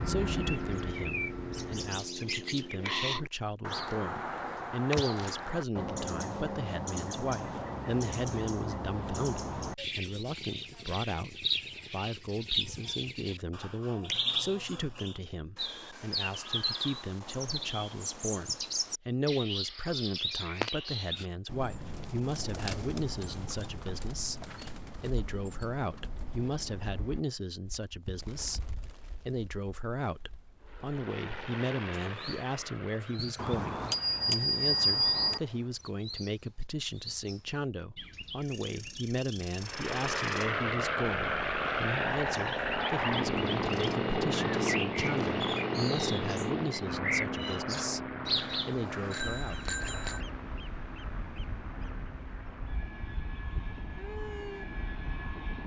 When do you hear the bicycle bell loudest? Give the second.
35 s.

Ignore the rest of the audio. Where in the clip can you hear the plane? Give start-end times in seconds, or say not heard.
0.0-2.0, 30.6-35.8, 39.5-55.6.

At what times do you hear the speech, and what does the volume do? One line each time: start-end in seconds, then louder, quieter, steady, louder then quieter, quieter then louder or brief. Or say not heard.
0.1-49.6 steady.